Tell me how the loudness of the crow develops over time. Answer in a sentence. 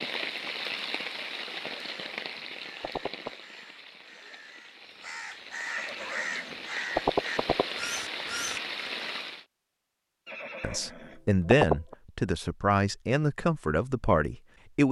The loudness of the crow goes up.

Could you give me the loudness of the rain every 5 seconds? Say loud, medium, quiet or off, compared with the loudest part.
loud, loud, off.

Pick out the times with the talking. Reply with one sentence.
The talking can be heard from 10.6 to 14.8 s.